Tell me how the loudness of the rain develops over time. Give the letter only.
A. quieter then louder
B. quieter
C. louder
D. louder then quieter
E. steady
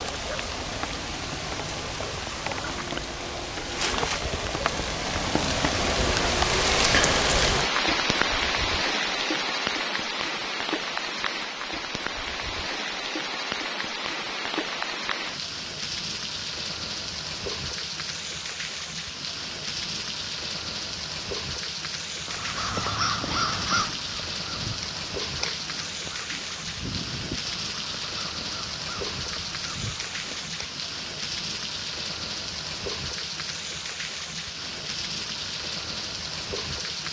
B.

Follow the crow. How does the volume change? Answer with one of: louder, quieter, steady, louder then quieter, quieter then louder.
quieter.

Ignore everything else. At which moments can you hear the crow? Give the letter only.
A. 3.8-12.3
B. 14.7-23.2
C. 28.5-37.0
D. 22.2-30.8
D.